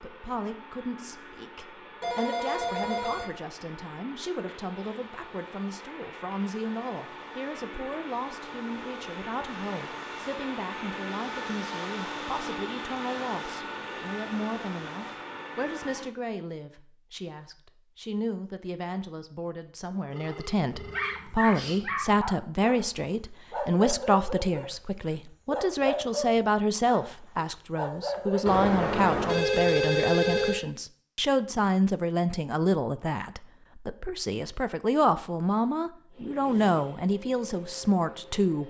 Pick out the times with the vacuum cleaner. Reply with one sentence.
You can hear the vacuum cleaner from 0.0 to 16.1 s and from 36.1 to 38.6 s.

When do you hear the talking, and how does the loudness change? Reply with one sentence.
You can hear the talking from 0.0 to 38.6 s, getting louder.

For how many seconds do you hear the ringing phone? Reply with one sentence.
The ringing phone can be heard for 5 seconds in total.